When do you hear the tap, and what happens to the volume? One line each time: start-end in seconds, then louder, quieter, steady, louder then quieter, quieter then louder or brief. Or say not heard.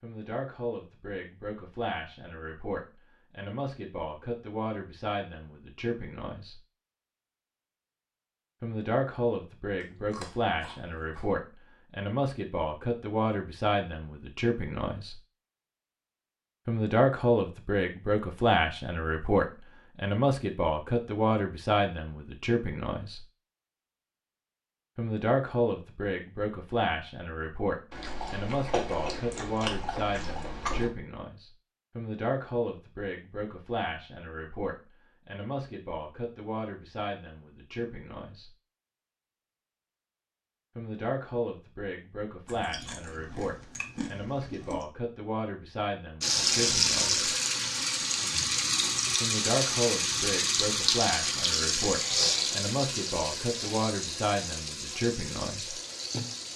46.2-56.5 quieter.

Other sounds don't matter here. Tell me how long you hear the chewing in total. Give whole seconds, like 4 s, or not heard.
7 s.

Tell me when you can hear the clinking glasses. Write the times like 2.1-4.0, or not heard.
not heard.